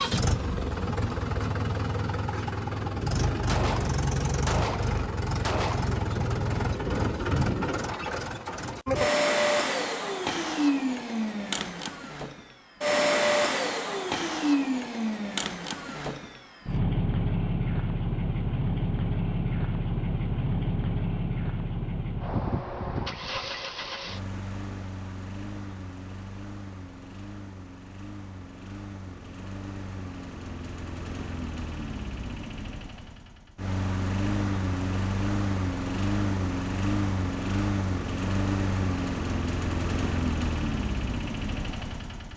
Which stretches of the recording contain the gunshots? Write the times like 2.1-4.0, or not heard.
3.5-6.0.